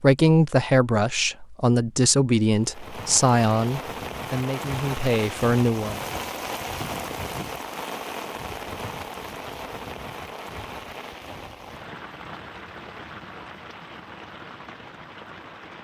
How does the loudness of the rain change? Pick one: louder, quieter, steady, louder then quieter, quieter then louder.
quieter.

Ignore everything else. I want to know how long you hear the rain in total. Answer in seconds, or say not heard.
13 s.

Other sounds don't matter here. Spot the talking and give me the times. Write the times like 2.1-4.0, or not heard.
0.0-6.0.